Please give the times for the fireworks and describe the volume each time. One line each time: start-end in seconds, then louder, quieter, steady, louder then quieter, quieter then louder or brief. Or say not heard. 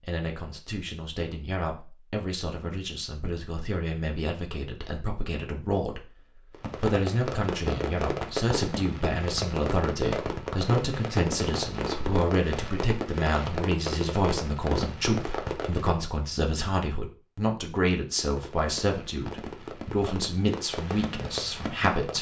6.5-15.9 steady
18.0-22.1 louder.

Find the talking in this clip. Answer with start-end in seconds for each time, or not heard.
0.0-6.1, 6.8-22.1.